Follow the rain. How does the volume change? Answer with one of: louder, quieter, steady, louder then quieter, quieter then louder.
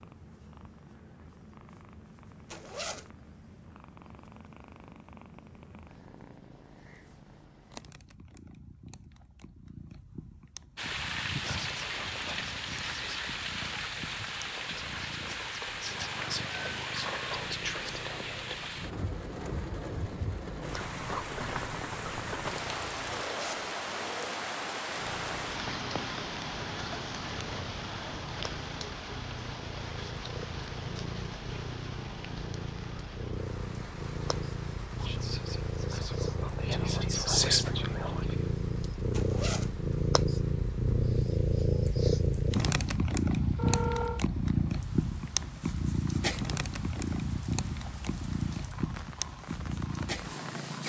quieter.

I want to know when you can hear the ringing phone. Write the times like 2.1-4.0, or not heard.
43.5-44.2.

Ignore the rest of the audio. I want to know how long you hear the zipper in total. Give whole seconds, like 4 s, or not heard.
2 s.